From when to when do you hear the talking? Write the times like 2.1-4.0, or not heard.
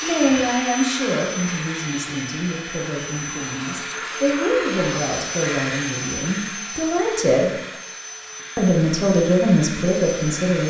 0.0-7.5, 8.6-10.6.